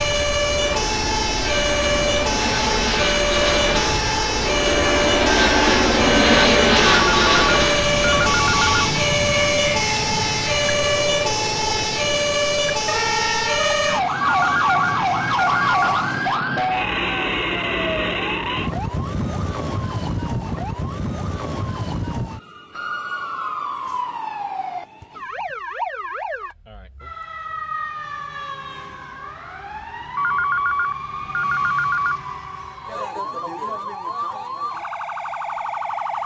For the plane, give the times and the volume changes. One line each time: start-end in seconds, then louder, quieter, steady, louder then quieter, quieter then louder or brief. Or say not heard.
0.0-16.4 louder then quieter.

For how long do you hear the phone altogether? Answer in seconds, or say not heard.
6 s.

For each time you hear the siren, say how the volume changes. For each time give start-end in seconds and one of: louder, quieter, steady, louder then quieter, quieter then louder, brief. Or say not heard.
0.0-36.2 quieter.